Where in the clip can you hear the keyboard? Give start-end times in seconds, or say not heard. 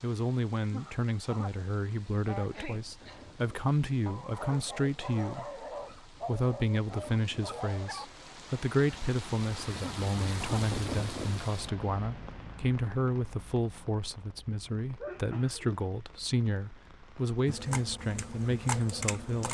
17.4-19.5.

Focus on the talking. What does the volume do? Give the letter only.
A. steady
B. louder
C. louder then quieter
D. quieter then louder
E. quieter
A.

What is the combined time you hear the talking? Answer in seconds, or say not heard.
19 s.